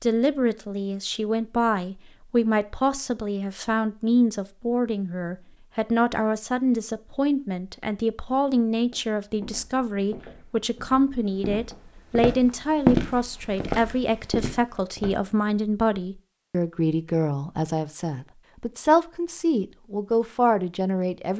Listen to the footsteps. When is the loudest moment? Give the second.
13 s.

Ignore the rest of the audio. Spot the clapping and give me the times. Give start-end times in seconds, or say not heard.
not heard.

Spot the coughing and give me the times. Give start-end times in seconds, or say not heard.
not heard.